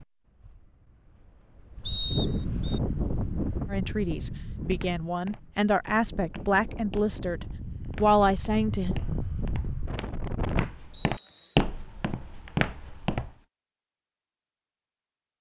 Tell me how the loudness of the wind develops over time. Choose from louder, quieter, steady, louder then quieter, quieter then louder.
quieter then louder.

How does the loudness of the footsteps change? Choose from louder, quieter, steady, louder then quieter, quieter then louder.
louder.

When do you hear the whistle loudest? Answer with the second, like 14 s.
2 s.